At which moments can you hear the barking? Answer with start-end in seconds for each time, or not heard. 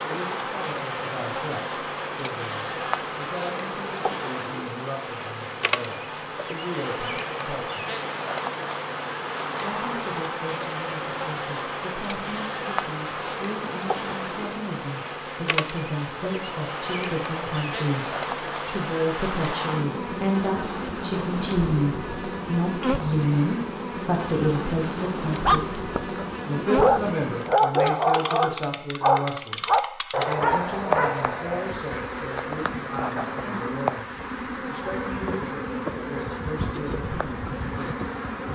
25.4-31.8.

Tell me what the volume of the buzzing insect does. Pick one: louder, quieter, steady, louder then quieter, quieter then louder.
steady.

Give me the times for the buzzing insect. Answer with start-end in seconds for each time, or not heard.
0.0-38.5.